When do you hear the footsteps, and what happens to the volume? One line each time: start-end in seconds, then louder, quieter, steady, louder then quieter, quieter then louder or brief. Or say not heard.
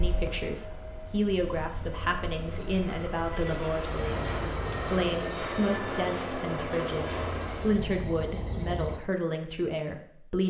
not heard.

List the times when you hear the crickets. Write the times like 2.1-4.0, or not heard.
0.0-9.0.